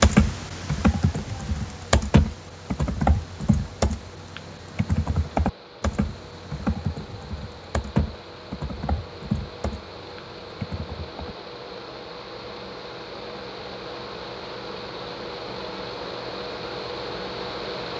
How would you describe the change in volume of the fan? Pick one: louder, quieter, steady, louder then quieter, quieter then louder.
louder.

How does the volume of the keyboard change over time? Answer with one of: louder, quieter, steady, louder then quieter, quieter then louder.
quieter.